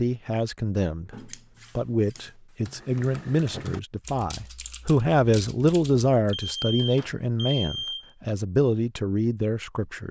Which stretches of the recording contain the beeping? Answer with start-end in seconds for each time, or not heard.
6.3-8.1.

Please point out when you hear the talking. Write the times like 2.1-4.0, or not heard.
0.0-10.0.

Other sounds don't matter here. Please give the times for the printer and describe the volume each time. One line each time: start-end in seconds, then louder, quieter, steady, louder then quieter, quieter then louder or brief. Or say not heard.
not heard.